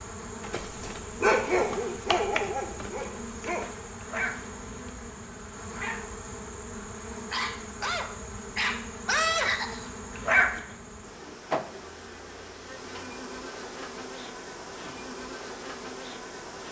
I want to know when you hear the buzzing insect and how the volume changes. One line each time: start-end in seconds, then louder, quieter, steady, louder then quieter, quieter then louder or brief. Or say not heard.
0.0-16.6 steady.